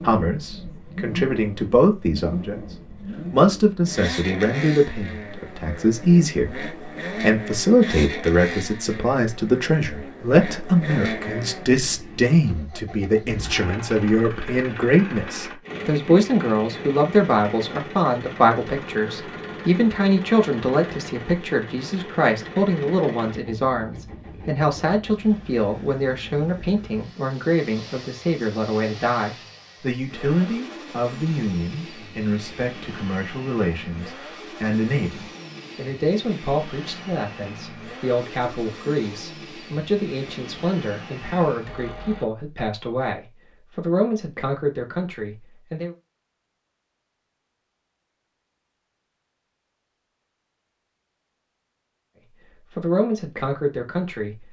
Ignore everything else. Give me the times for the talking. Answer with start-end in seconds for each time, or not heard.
0.0-46.0, 52.8-54.4.